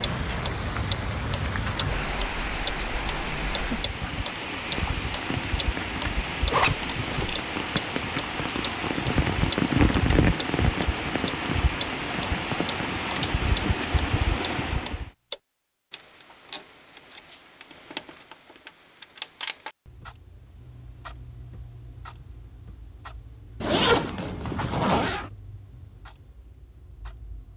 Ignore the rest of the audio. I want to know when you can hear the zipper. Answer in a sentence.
The zipper can be heard from 6.5 to 7.4 s and from 23.6 to 25.3 s.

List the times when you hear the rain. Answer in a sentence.
You can hear the rain from 0.0 to 15.1 s.